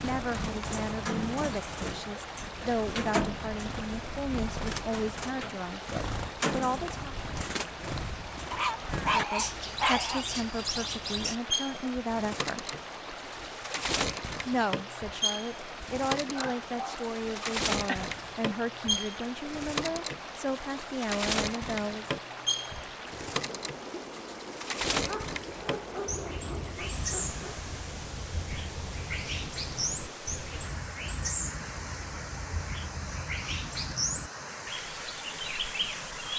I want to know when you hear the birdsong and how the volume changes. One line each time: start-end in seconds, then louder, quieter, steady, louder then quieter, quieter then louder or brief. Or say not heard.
0.0-36.3 steady.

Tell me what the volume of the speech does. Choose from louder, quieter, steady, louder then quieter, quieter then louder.
steady.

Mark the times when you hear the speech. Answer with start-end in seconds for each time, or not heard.
0.0-7.2, 9.0-12.7, 14.4-22.1.